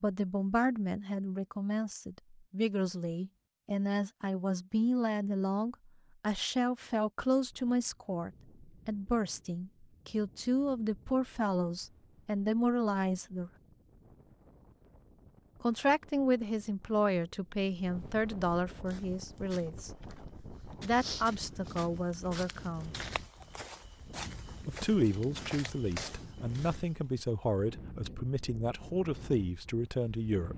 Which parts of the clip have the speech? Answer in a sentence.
The speech can be heard from 0.0 to 13.5 s, from 15.6 to 22.9 s and from 24.6 to 30.5 s.